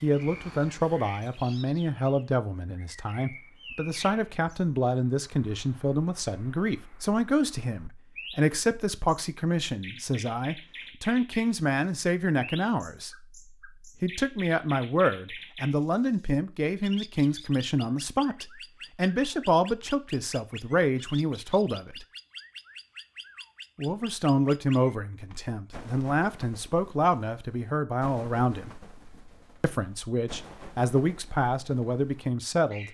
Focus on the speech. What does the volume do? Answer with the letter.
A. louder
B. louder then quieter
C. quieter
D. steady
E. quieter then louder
D.